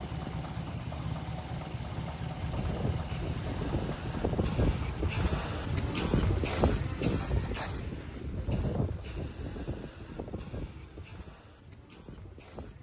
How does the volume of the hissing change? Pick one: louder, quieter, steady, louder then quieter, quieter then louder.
louder then quieter.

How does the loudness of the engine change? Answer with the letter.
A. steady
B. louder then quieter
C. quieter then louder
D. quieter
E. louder
D.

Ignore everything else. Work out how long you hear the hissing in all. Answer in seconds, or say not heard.
13 s.